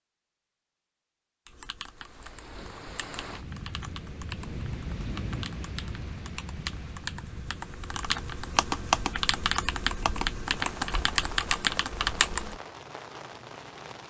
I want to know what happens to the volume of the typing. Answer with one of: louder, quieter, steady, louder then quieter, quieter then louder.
louder.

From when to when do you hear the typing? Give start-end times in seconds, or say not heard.
1.4-12.6.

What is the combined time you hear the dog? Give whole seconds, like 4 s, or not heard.
not heard.